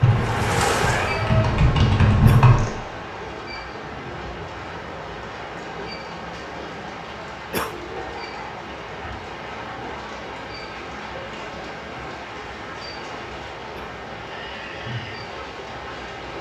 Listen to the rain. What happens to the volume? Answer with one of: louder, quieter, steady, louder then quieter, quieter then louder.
quieter.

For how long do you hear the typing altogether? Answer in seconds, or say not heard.
3 s.